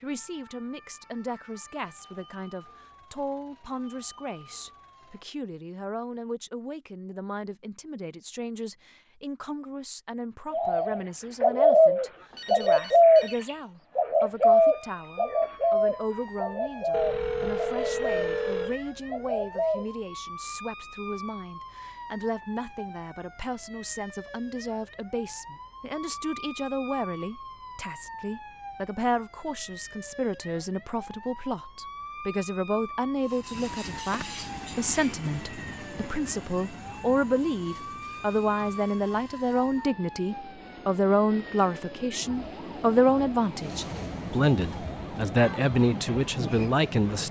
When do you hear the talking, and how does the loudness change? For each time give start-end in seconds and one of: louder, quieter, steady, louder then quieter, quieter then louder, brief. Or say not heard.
0.0-47.2 louder.